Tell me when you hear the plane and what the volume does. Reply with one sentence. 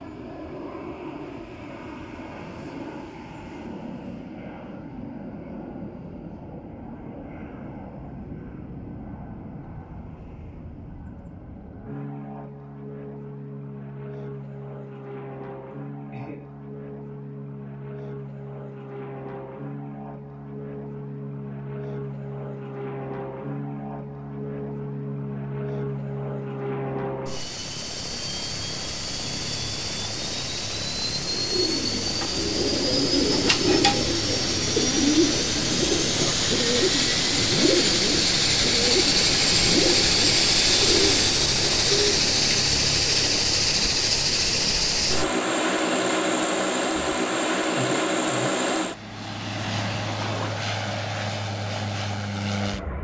The plane can be heard from 0.0 to 52.9 s, getting louder.